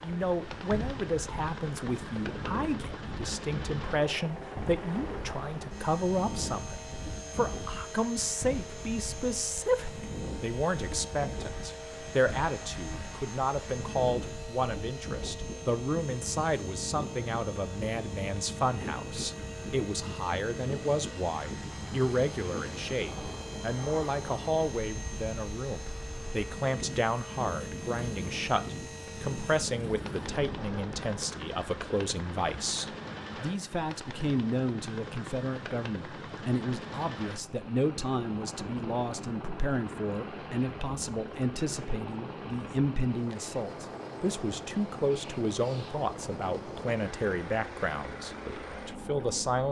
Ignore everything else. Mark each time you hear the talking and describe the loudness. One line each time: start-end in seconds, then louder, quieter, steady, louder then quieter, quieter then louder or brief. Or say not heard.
0.0-49.6 steady.